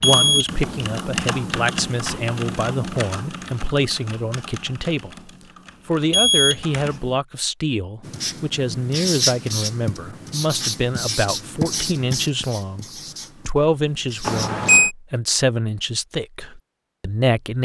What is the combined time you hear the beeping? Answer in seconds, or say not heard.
2 s.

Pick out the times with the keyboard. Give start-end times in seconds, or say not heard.
0.0-7.2.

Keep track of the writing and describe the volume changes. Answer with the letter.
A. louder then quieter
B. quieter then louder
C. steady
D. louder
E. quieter
E.